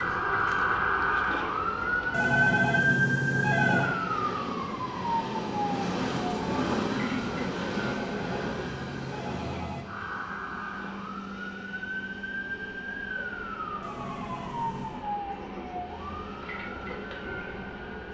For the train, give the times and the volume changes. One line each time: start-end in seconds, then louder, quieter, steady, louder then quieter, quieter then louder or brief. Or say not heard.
0.2-18.0 louder then quieter.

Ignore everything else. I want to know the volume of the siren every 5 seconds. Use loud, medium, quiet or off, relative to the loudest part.
loud, medium, medium, medium.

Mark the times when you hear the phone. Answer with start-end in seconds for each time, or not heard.
2.1-4.0, 8.0-9.8, 13.8-15.1.